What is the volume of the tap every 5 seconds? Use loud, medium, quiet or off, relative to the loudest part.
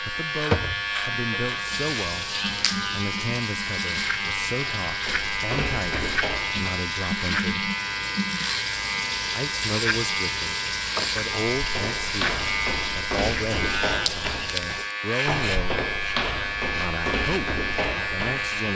loud, loud, loud, off.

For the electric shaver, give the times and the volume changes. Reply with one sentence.
The electric shaver can be heard from 0.0 to 18.7 s, at a steady volume.